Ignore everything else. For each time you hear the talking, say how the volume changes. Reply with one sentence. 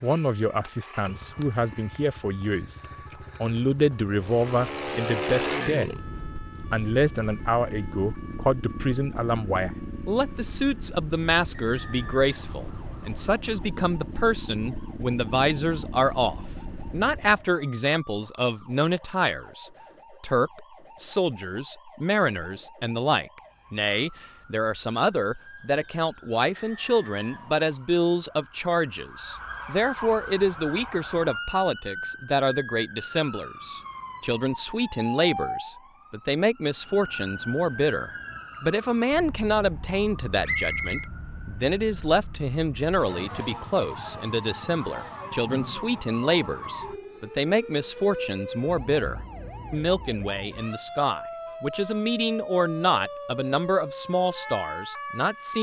You can hear the talking briefly from 0.0 to 2.8 s; briefly from 3.4 to 5.9 s; and from 6.7 to 55.5 s, at a steady volume.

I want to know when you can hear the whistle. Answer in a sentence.
The whistle can be heard from 11.5 to 13.2 s, from 26.5 to 27.7 s and from 40.5 to 41.1 s.